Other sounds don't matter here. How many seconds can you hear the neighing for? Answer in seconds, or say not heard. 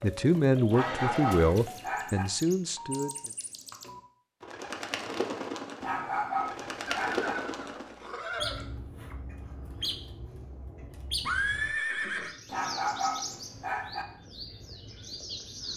4 s.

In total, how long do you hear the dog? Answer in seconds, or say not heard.
5 s.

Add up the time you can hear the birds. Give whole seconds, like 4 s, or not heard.
16 s.